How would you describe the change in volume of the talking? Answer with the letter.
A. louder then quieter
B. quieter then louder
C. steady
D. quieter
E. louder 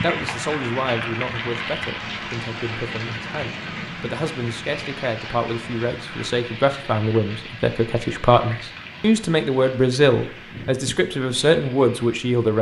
E.